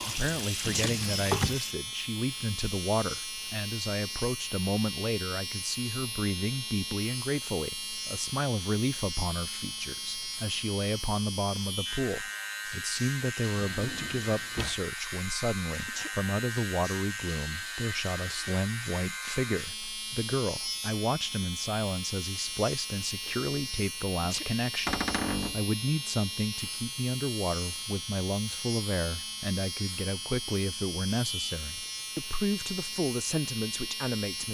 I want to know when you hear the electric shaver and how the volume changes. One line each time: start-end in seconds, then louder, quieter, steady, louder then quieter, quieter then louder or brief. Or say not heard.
0.0-34.5 steady.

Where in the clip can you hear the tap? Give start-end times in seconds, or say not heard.
0.0-1.8.